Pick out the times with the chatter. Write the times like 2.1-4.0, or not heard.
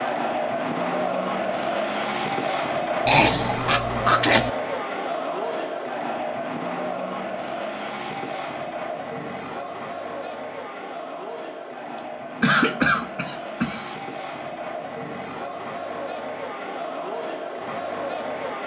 0.0-18.6.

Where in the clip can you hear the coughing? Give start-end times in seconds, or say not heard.
3.0-4.5, 11.9-13.9.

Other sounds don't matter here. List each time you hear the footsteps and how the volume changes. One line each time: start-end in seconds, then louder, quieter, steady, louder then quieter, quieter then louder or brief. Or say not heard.
not heard.